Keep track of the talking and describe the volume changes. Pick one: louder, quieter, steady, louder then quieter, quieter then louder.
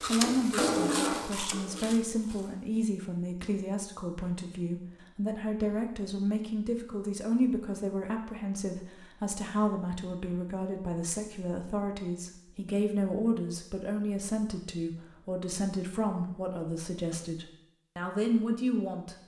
steady.